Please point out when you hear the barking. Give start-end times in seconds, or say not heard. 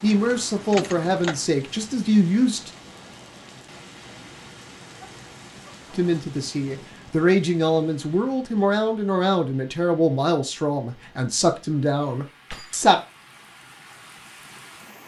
not heard.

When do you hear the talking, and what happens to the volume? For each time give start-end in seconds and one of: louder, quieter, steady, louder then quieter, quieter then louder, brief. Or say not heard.
0.0-2.7 brief
5.9-13.0 steady.